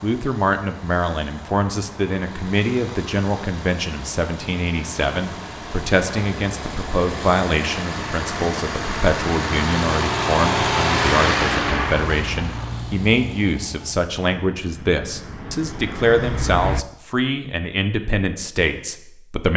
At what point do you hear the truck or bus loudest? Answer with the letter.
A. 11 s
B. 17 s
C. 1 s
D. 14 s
A.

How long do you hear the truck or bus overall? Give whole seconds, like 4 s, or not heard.
17 s.